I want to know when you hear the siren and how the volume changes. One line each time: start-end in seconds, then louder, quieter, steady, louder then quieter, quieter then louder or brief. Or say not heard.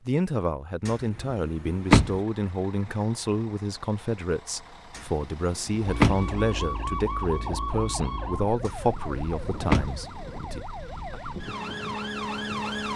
5.8-12.9 quieter then louder.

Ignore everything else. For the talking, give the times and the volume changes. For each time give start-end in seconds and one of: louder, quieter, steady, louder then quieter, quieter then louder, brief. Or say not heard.
0.1-11.2 steady.